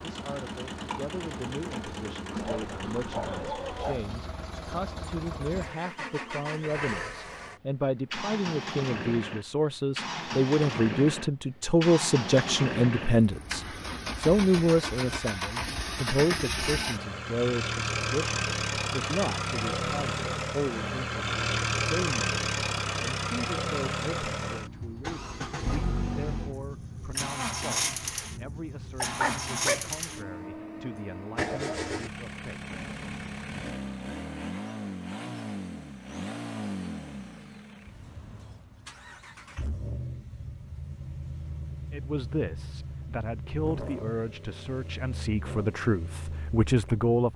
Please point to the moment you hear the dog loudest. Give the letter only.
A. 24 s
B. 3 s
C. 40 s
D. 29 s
D.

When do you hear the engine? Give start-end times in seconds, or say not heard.
0.0-47.3.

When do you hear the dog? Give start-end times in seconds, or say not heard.
2.4-4.1, 29.0-29.9.